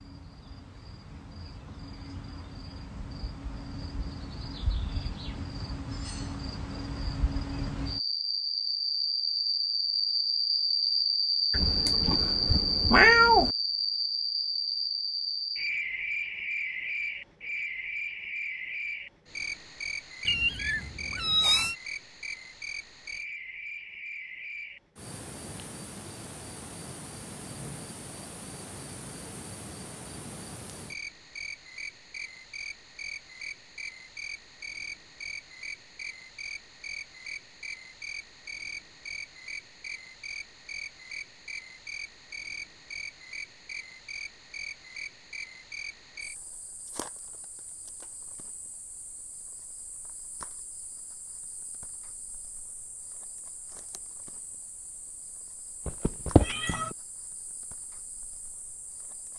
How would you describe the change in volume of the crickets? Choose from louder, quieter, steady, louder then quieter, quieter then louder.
quieter.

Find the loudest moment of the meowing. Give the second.
13 s.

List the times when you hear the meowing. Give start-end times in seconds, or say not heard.
11.5-13.5, 20.2-21.8, 55.9-56.9.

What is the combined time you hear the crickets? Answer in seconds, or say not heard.
59 s.